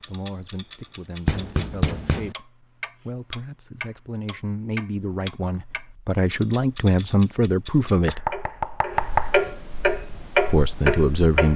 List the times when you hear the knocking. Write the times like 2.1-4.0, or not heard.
1.2-2.4, 8.1-9.3.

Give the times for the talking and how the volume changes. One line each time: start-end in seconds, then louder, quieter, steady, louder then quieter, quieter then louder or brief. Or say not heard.
0.1-8.3 louder
10.5-11.5 brief.